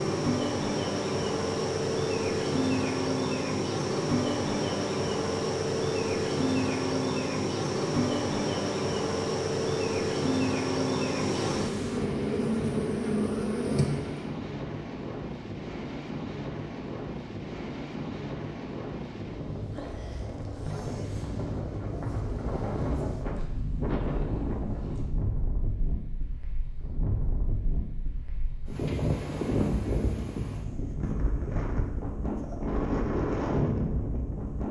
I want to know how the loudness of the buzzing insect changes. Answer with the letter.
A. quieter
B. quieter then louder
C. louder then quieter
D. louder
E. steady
E.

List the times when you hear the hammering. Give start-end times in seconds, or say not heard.
not heard.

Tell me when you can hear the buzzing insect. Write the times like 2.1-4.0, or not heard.
0.0-14.3.